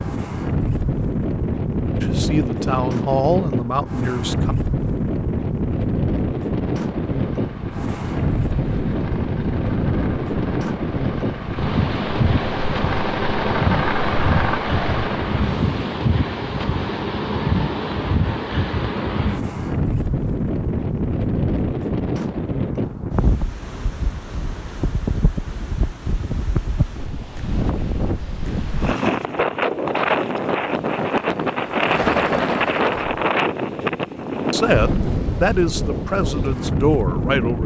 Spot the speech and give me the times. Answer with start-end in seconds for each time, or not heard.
2.0-4.5, 34.5-37.6.